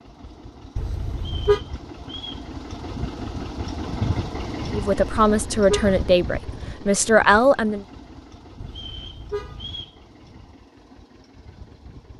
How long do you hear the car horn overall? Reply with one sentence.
The car horn can be heard for 3 seconds in total.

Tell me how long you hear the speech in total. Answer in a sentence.
The speech can be heard for 3 seconds in total.